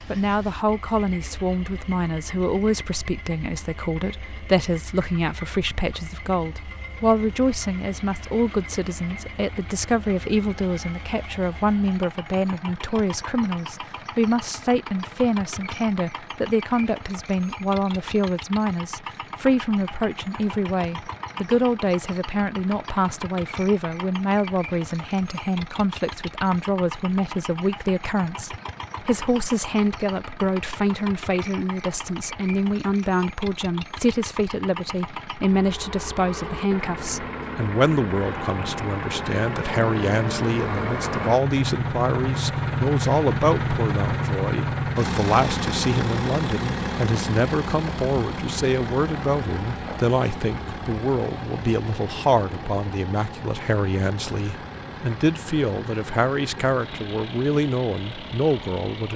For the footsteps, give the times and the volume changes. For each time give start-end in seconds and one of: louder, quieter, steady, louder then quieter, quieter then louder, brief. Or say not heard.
not heard.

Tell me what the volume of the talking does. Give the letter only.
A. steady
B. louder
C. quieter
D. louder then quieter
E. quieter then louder
A.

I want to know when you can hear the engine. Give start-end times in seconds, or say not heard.
0.0-59.1.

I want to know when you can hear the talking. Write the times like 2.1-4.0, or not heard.
0.1-59.1.